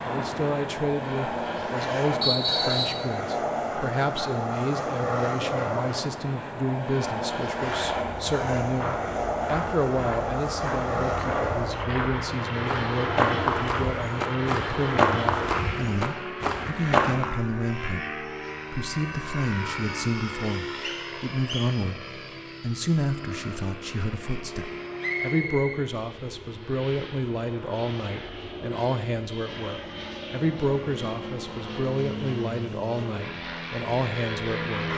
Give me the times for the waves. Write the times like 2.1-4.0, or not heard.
not heard.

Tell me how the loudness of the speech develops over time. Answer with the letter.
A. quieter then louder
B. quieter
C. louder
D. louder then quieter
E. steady
E.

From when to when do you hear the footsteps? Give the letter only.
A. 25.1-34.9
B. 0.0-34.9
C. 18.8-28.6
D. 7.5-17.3
D.